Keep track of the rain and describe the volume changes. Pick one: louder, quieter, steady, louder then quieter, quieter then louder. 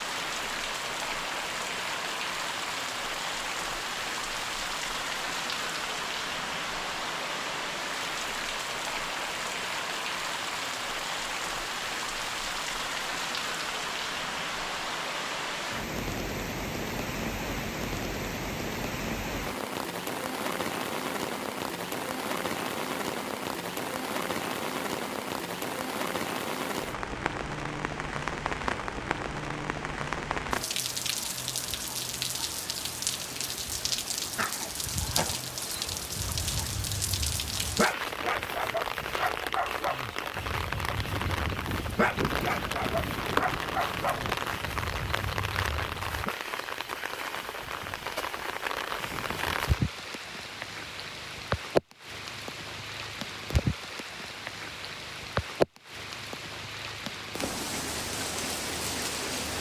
steady.